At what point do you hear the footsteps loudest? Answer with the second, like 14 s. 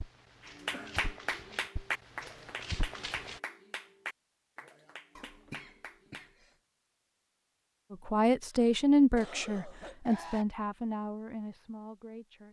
3 s.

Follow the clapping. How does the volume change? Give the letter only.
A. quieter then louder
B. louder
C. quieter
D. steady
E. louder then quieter
C.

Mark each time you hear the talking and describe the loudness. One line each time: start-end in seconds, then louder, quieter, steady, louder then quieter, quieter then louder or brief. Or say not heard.
7.9-12.4 quieter.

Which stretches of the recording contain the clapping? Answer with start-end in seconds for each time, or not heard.
0.5-6.3.